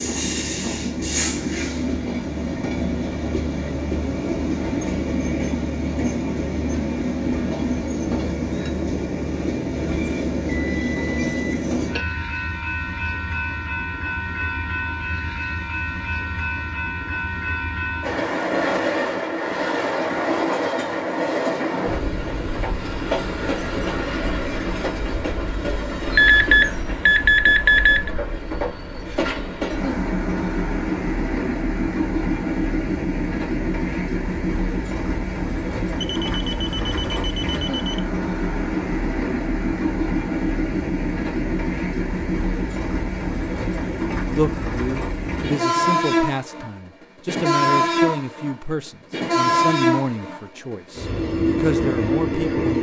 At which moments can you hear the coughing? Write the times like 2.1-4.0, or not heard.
not heard.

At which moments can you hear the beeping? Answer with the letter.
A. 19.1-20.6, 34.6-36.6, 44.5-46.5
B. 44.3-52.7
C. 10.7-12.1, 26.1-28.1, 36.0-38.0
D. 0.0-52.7
C.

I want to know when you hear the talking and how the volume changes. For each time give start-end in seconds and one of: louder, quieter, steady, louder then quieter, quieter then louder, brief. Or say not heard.
44.3-52.7 steady.